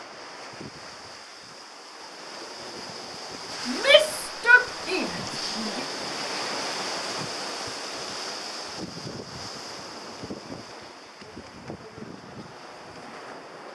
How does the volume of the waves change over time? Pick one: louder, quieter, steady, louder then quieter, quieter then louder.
louder then quieter.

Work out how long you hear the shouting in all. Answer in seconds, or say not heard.
2 s.